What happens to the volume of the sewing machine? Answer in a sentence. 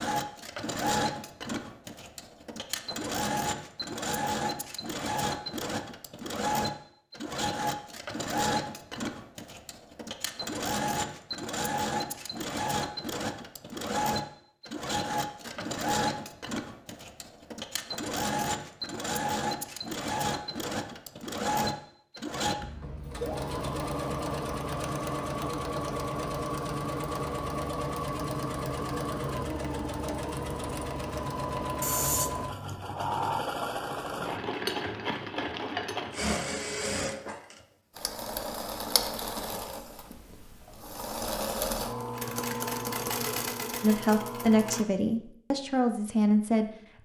The loudness of the sewing machine stays about the same.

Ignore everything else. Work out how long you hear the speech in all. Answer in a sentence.
You can hear the speech for 3 seconds altogether.